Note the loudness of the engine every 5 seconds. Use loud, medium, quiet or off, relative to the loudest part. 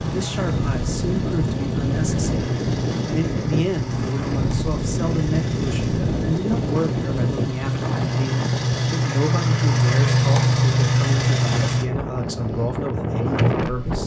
medium, loud, loud.